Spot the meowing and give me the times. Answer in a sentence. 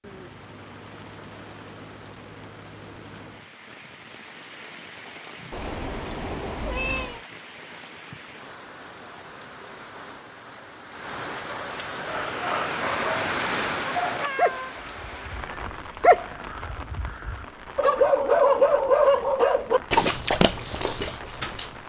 The meowing can be heard from 5.5 to 7.2 s and from 13.8 to 14.8 s.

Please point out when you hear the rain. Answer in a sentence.
You can hear the rain from 0.0 to 21.8 s.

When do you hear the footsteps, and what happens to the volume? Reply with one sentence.
The footsteps can't be heard in this clip.